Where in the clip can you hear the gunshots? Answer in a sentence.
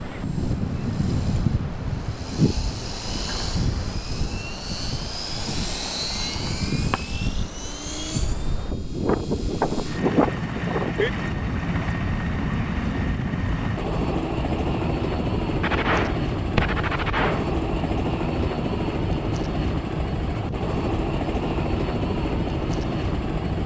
The gunshots can be heard from 15.6 to 17.4 s.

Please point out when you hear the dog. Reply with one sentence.
You can't hear the dog here.